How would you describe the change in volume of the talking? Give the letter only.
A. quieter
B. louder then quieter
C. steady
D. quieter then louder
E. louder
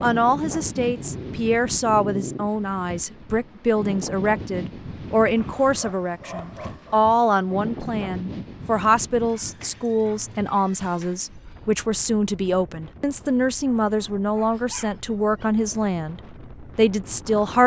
C.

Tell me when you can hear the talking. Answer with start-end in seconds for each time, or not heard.
0.0-17.6.